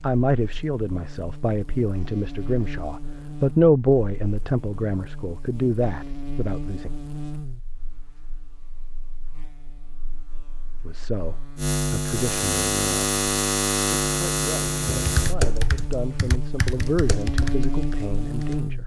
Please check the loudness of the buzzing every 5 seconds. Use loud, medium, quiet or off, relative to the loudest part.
quiet, quiet, loud, medium.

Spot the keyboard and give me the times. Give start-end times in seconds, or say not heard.
14.8-18.6.